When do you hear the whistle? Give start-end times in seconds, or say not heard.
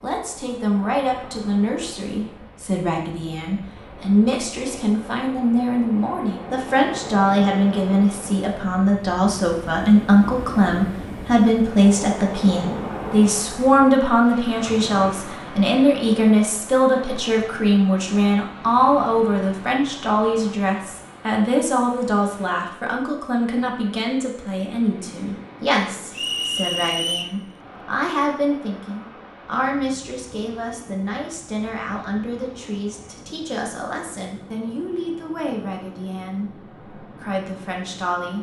26.1-27.4.